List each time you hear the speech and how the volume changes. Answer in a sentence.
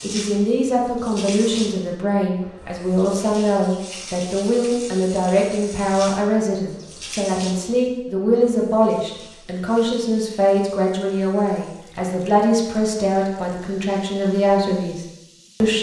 You can hear the speech from 0.0 to 15.7 s, at a steady volume.